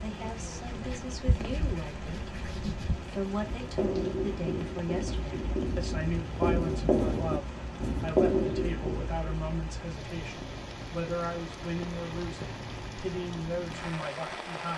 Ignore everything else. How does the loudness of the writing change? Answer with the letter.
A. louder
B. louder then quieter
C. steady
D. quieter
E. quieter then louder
A.